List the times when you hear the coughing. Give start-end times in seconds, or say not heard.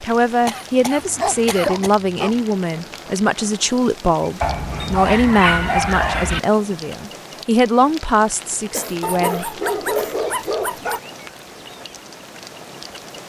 0.5-1.9, 8.7-10.2.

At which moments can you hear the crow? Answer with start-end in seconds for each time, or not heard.
not heard.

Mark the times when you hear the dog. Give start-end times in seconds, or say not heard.
0.9-2.5, 4.4-6.4, 9.0-11.0.